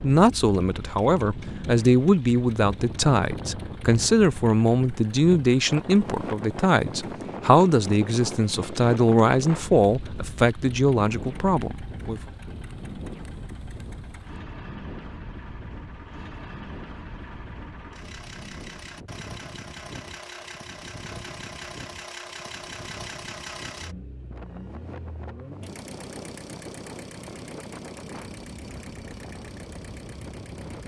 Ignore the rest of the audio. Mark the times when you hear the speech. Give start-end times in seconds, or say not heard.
0.0-12.2.